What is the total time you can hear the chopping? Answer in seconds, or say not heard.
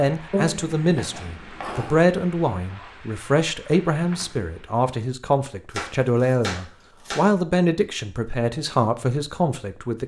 3 s.